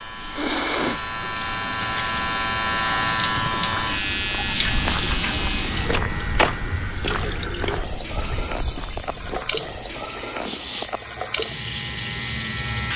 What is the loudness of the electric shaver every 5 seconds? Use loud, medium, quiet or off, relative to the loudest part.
loud, medium, medium.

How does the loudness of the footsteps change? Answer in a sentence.
The loudness of the footsteps goes up, then down.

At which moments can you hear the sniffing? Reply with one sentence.
The sniffing can be heard from 0.3 to 1.1 s, from 4.4 to 5.0 s and from 10.4 to 10.9 s.